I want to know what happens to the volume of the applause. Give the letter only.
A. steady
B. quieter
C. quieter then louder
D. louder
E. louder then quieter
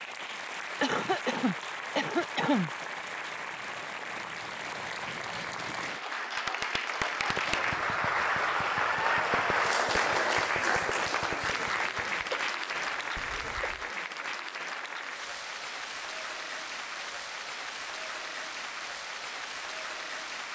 E.